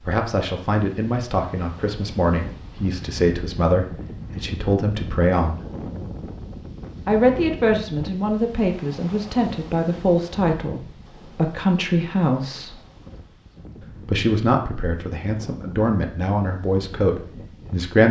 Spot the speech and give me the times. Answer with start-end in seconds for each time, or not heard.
0.0-5.7, 7.0-12.8, 13.8-18.0.